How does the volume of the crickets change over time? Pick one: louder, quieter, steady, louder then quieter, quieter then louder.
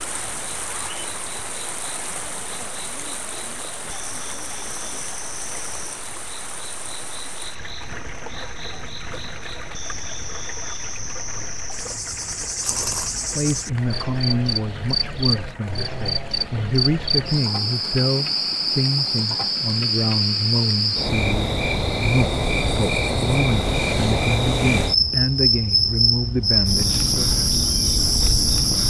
louder.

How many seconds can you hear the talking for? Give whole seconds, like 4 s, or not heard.
14 s.